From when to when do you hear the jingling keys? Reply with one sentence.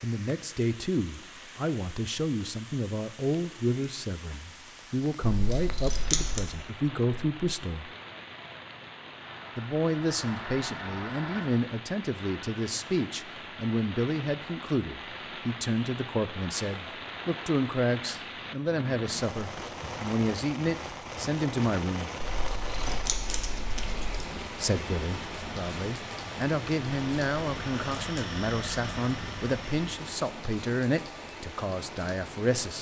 The jingling keys can be heard from 5.3 to 6.5 s and from 22.2 to 24.2 s.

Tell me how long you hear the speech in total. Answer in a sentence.
The speech can be heard for 29 seconds in total.